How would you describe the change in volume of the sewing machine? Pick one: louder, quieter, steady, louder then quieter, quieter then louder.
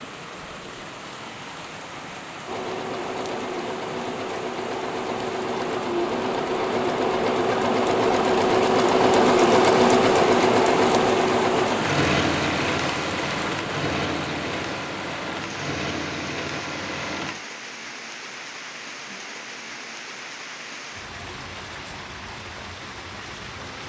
louder then quieter.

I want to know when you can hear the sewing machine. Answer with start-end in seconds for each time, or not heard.
2.5-17.4.